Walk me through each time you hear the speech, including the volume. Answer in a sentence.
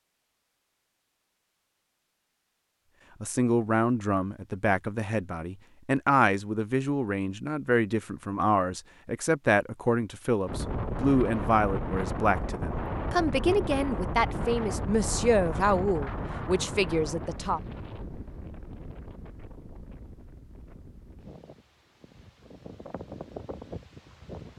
The speech can be heard from 3.2 to 17.6 s, at a steady volume.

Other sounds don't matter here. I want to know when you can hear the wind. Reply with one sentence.
The wind can be heard from 10.4 to 24.5 s.